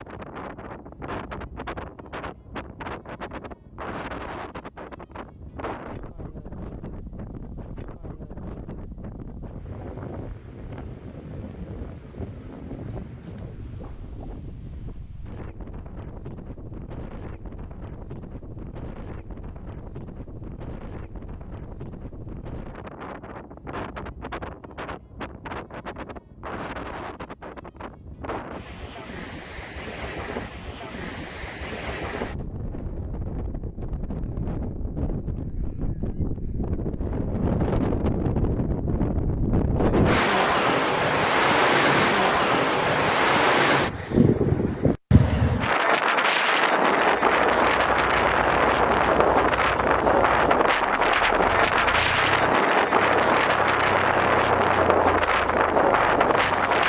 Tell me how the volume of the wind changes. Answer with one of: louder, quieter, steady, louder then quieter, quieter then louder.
louder.